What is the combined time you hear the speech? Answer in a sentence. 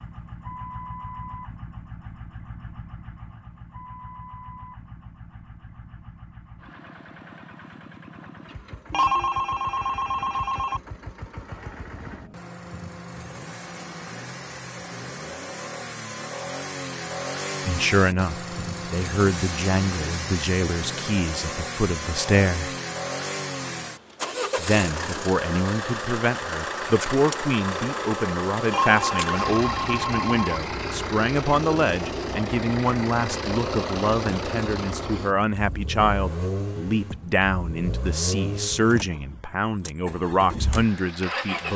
The speech can be heard for 22 seconds in total.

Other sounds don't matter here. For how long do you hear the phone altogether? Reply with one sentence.
The phone can be heard for 4 seconds in total.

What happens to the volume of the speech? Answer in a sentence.
The volume of the speech stays about the same.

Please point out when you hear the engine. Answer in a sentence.
The engine can be heard from 0.0 to 41.7 s.